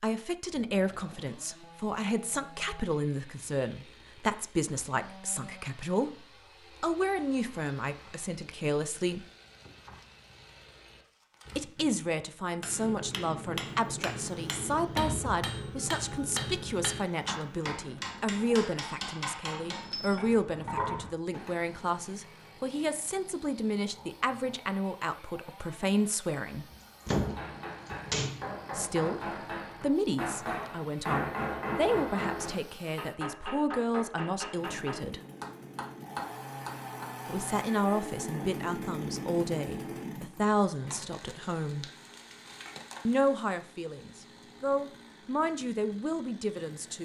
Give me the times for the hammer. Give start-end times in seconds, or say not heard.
12.6-21.6, 27.1-37.1.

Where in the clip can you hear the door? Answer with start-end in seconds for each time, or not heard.
14.9-15.4, 26.7-28.4.